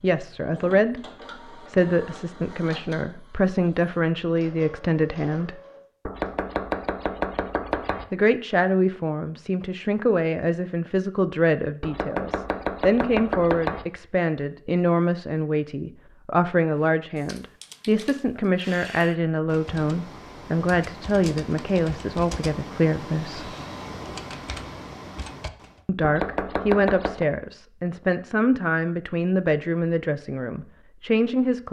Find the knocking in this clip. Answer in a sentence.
You can hear the knocking from 6.0 to 8.1 s, from 11.8 to 13.8 s and from 26.0 to 27.2 s.